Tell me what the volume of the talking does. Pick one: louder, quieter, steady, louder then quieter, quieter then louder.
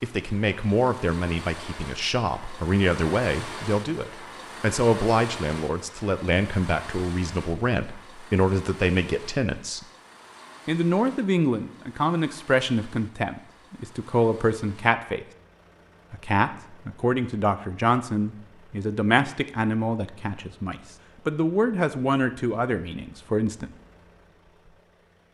steady.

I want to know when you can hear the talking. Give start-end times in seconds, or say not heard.
0.0-9.8, 10.7-15.2, 16.1-23.8.